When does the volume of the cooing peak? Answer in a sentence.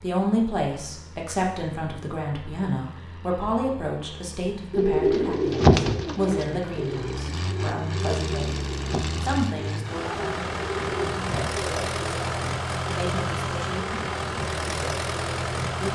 The loudest moment of the cooing is at 6 seconds.